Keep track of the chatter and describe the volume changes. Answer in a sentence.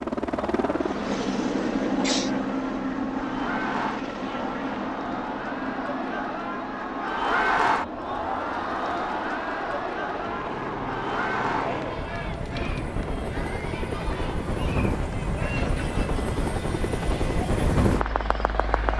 The loudness of the chatter goes up, then down.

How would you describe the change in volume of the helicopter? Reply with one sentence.
The loudness of the helicopter goes down, then up.